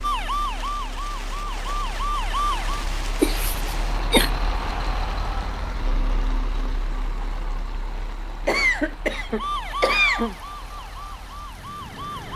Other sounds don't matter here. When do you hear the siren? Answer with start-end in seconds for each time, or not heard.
0.0-2.9, 9.2-12.3.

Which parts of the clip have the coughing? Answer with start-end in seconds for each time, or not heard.
3.2-4.3, 8.4-10.3.